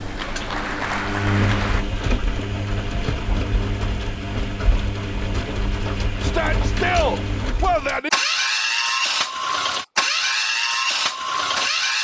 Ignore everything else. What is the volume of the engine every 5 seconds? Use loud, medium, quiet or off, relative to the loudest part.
medium, loud, loud.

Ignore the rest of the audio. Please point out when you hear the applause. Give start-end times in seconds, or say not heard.
0.0-1.9.